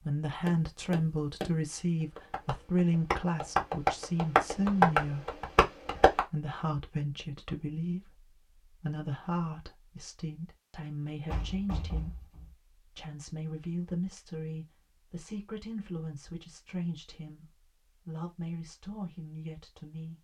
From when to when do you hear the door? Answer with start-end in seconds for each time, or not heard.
11.3-12.6.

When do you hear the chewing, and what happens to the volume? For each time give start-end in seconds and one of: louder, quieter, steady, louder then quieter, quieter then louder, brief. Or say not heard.
not heard.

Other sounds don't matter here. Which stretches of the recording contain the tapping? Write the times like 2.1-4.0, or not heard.
0.5-6.2.